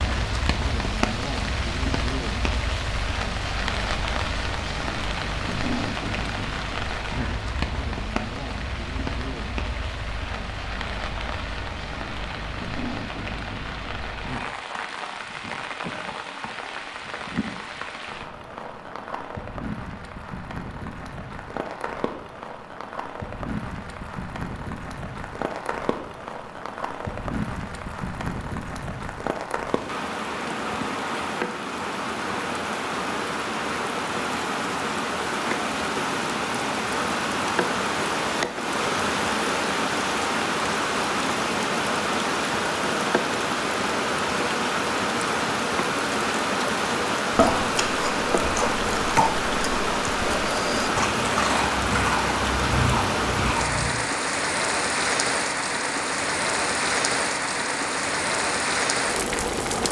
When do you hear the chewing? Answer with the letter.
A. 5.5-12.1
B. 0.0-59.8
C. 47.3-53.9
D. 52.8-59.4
C.